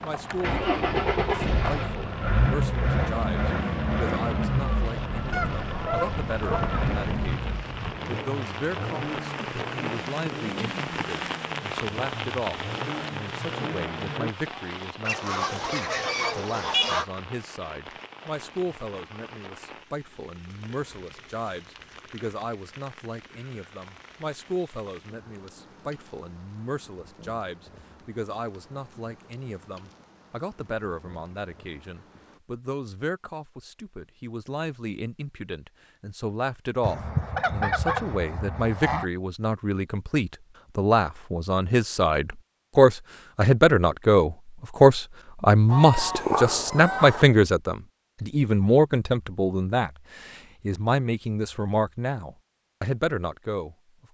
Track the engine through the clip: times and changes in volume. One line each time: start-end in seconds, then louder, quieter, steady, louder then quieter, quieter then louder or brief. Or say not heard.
0.0-14.3 quieter.